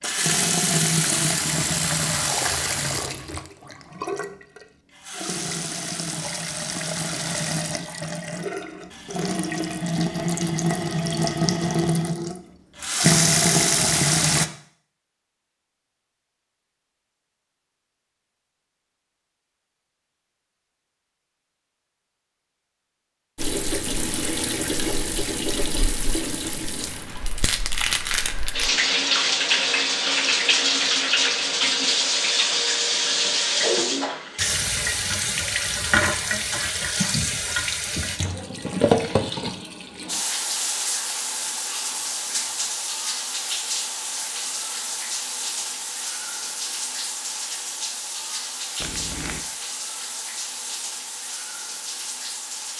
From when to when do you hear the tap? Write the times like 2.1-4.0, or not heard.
0.0-14.5, 23.4-52.7.